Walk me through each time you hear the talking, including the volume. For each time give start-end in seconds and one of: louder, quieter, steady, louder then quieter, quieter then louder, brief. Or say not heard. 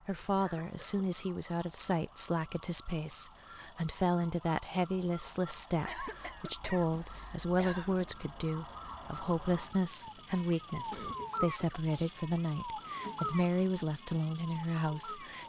0.1-15.4 steady.